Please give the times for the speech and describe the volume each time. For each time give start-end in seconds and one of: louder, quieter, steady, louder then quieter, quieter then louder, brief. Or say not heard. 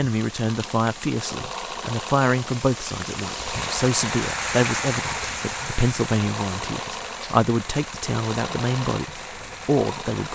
0.0-10.2 steady.